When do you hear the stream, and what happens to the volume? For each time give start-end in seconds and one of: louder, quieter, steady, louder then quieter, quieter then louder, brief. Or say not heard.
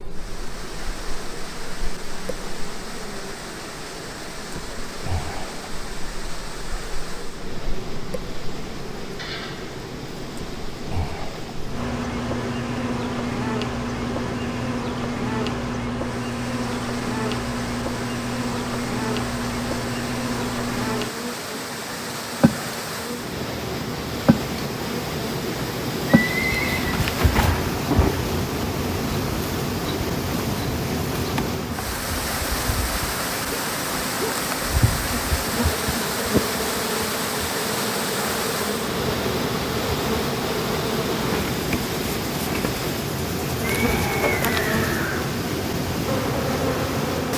0.0-47.3 louder.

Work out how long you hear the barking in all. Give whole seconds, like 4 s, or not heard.
not heard.